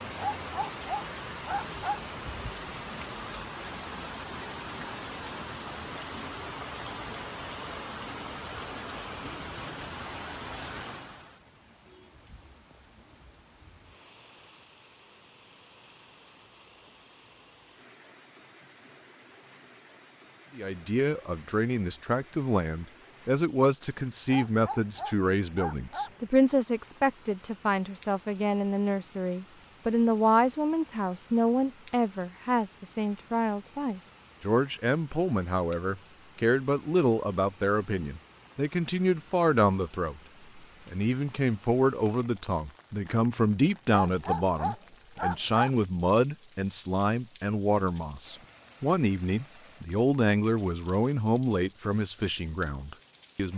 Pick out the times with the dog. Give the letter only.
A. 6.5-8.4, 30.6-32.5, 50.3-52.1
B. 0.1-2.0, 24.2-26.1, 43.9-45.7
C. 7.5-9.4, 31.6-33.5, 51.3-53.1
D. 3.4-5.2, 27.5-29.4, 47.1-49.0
B.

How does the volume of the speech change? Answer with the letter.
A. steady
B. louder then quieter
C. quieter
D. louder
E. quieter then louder
A.